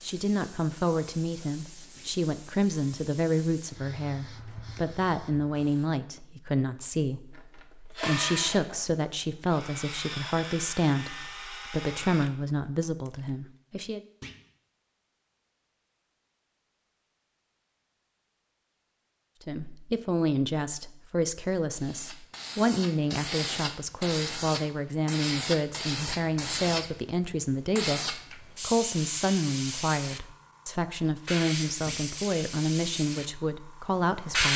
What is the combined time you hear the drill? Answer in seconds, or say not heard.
6 s.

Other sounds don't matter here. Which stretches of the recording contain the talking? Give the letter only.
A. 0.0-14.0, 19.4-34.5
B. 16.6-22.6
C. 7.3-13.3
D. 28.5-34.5
A.